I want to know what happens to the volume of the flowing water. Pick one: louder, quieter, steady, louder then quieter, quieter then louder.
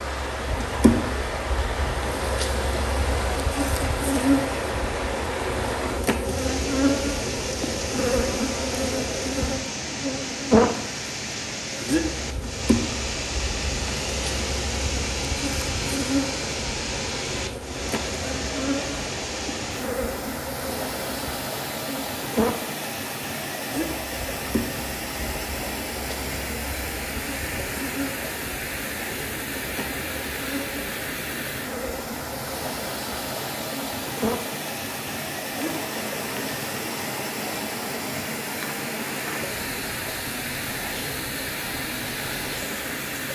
steady.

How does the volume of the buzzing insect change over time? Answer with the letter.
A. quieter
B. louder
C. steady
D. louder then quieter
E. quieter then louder
A.